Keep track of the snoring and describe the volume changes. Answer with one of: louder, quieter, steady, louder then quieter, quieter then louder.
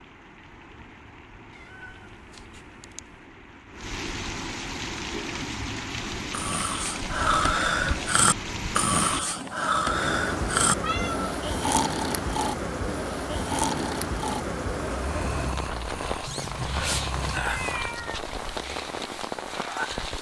quieter.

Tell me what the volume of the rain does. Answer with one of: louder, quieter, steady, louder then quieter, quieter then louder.
louder.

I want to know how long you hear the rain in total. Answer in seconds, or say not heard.
20 s.